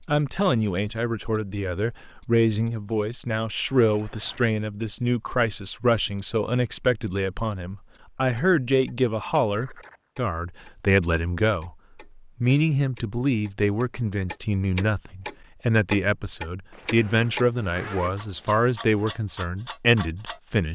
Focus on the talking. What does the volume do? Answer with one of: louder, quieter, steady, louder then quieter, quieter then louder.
steady.